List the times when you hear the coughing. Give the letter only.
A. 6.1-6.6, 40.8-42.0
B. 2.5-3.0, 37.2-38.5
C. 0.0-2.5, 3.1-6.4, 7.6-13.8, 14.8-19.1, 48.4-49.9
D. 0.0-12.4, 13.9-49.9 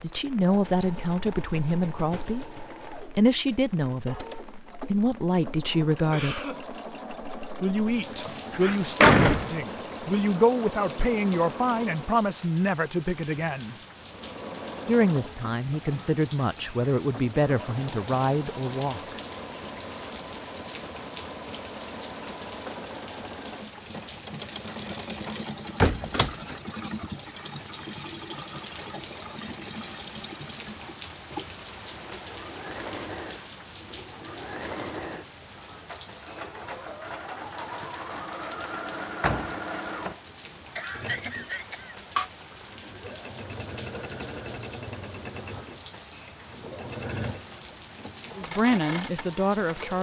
A.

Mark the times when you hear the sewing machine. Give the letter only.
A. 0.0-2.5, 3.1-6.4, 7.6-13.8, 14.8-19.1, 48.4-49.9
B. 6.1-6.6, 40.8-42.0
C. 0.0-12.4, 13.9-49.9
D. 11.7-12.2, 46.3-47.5
C.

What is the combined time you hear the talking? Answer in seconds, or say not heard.
18 s.